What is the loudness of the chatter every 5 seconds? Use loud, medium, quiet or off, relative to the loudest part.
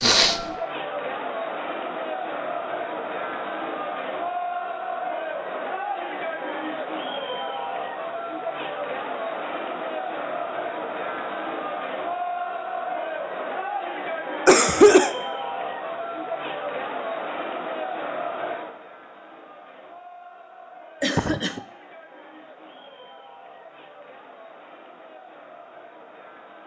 loud, loud, loud, loud, quiet, quiet.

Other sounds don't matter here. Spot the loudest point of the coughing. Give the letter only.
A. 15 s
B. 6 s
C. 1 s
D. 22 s
A.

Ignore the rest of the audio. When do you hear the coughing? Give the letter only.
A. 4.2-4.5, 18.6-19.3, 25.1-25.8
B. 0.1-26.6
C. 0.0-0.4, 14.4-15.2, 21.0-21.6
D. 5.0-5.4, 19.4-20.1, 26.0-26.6
C.